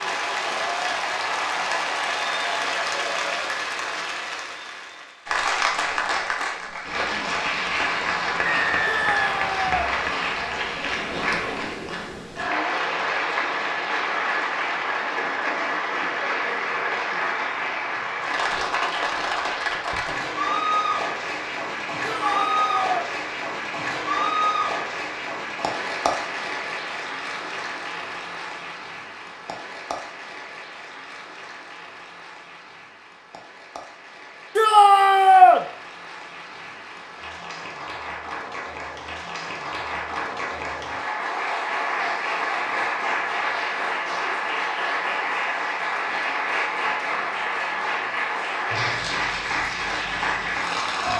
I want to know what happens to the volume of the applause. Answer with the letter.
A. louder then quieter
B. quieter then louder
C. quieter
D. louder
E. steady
B.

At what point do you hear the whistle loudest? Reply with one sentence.
The volume of the whistle peaks at 9 seconds.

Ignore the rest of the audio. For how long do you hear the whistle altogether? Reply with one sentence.
You can hear the whistle for 2 seconds altogether.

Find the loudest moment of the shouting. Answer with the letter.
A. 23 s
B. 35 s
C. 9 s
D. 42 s
B.